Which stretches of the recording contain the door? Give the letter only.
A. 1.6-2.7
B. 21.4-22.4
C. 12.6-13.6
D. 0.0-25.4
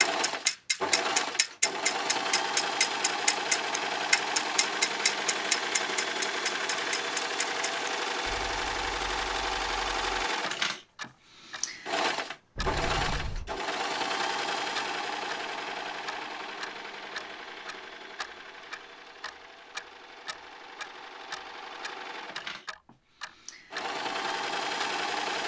C.